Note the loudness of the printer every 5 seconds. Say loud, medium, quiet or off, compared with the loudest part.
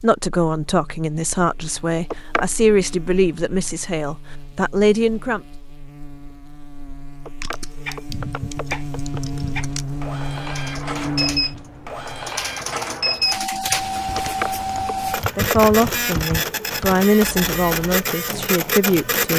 off, medium, loud, loud.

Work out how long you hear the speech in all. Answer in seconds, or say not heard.
9 s.